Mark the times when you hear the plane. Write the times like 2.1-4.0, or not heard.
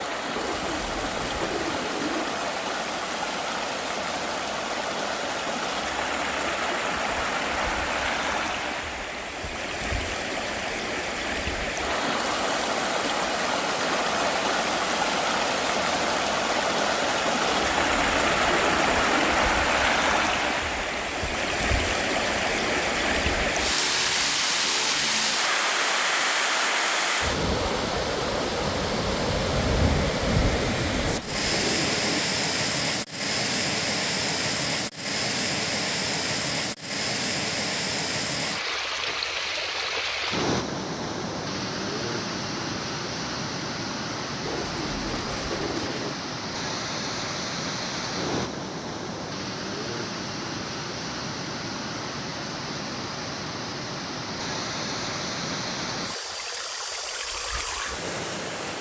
not heard.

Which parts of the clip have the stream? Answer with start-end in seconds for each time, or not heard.
0.0-58.7.